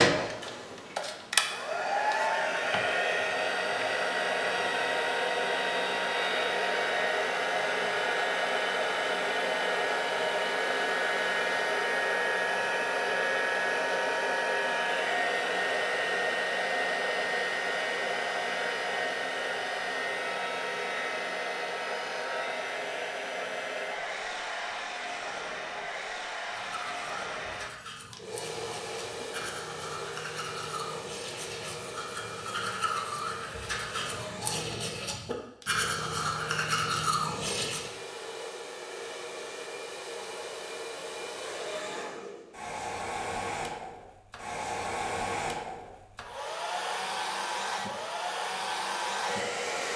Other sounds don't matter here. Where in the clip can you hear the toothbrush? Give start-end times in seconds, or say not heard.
26.4-37.9.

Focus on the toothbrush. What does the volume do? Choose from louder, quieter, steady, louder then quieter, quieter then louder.
louder.